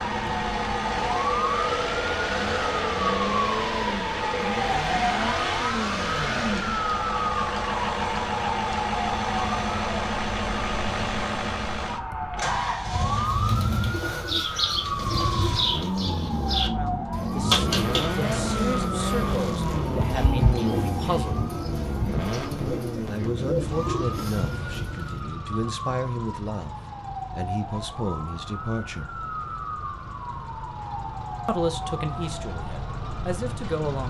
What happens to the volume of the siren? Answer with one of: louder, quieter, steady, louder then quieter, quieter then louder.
quieter.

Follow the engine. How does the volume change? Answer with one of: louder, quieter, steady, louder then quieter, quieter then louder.
quieter.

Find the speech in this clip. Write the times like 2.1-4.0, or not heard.
16.7-21.5, 23.1-29.1, 31.4-34.0.